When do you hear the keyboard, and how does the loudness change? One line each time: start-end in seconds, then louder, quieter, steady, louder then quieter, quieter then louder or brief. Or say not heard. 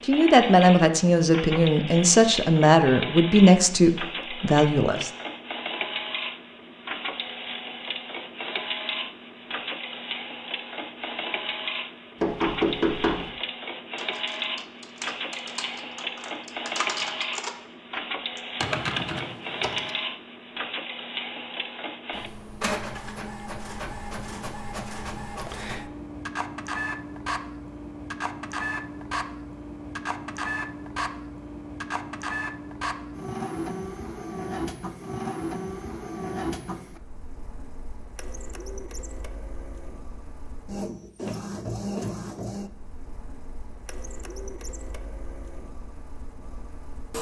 13.9-19.9 louder.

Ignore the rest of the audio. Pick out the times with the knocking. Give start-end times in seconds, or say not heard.
12.2-13.3.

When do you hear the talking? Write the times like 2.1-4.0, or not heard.
0.0-5.1.